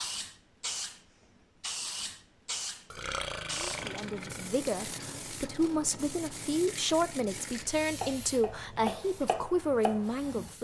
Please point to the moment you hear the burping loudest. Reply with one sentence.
The loudest moment of the burping is at 3 seconds.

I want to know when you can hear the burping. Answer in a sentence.
You can hear the burping from 2.9 to 4.5 s.